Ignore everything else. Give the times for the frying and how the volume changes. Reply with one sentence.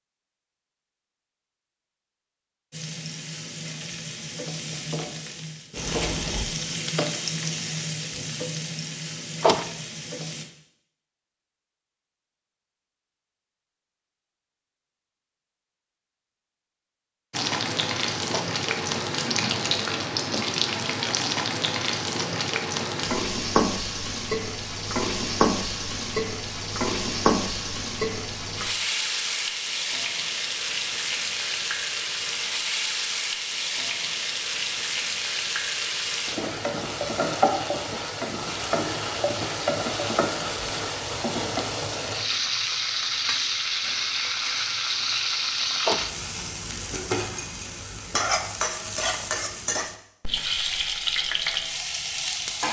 You can hear the frying from 2.7 to 10.4 s, getting louder then quieter; and from 17.3 to 52.6 s, at a steady volume.